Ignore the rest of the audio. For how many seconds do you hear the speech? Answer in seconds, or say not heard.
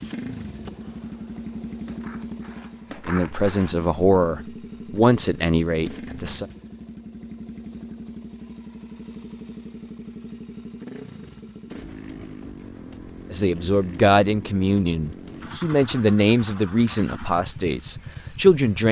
9 s.